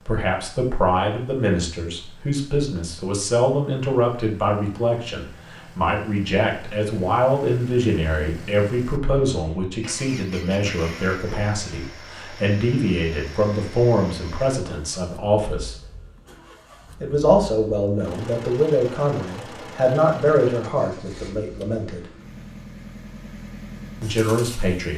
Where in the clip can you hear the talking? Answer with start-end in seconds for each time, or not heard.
0.1-15.8, 17.0-22.1, 24.0-24.9.